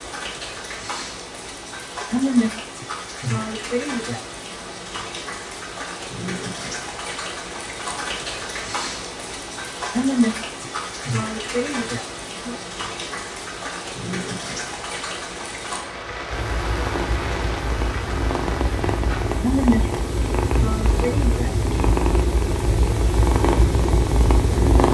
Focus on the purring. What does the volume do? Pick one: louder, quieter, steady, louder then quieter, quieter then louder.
louder.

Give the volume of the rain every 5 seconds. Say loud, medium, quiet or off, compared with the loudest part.
loud, loud, loud, loud, medium.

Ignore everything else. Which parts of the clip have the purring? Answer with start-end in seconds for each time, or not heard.
16.3-24.8.